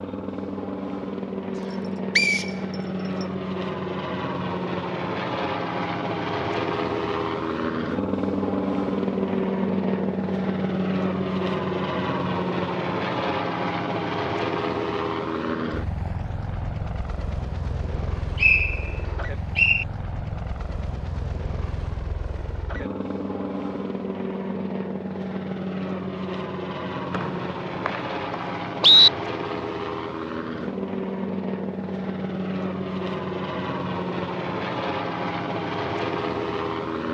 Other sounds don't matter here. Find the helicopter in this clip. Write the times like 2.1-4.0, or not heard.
0.0-37.1.